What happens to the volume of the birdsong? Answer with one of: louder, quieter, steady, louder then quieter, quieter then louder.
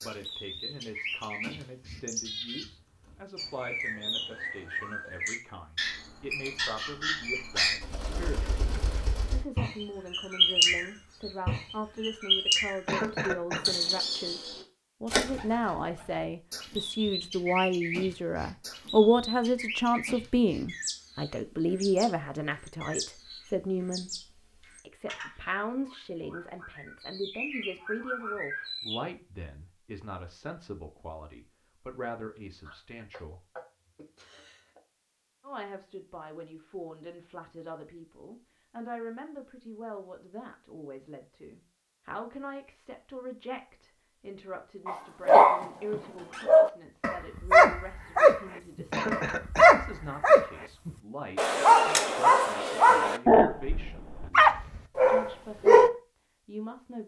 louder then quieter.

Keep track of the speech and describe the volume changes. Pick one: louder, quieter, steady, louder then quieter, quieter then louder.
louder then quieter.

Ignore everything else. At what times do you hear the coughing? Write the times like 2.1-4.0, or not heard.
12.8-13.8, 32.6-34.8, 48.9-49.8.